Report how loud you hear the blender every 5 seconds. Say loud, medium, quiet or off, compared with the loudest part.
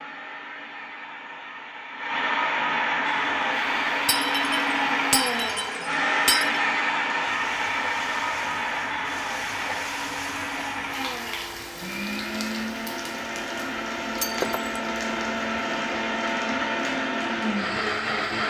loud, loud, medium, loud.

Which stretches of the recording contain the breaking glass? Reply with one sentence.
The breaking glass can be heard from 4.0 to 6.6 s and from 14.2 to 14.7 s.